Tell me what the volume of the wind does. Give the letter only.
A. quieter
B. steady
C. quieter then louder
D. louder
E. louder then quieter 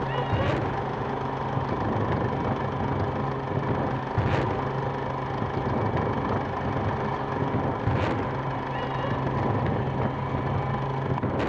B.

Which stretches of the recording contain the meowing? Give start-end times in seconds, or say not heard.
0.1-0.6, 8.7-9.2.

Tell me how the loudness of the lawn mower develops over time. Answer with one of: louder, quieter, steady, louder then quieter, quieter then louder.
steady.